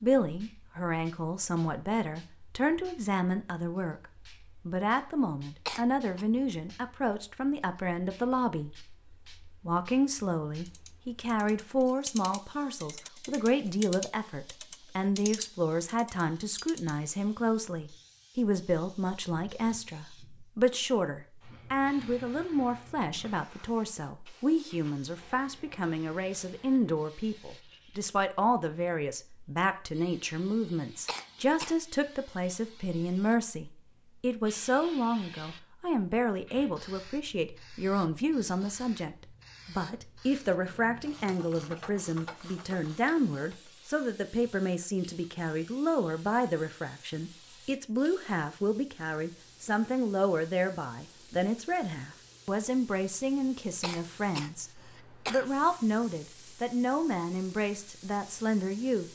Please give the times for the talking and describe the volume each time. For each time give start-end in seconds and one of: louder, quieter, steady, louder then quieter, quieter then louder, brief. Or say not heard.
0.0-59.0 steady.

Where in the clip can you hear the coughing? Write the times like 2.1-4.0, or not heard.
5.7-6.2, 31.1-31.8, 53.8-55.5.